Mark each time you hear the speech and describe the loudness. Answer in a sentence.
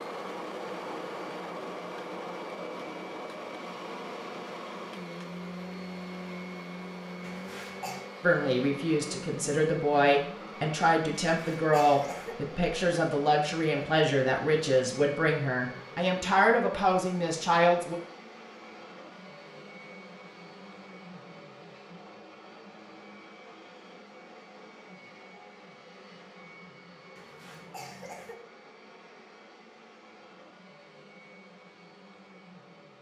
You can hear the speech from 8.2 to 17.9 s, at a steady volume.